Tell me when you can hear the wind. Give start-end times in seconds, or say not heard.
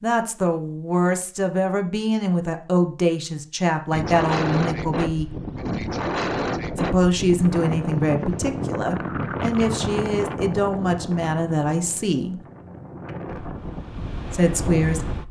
3.9-15.2.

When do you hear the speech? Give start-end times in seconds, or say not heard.
0.0-5.3, 6.8-12.4, 14.3-15.1.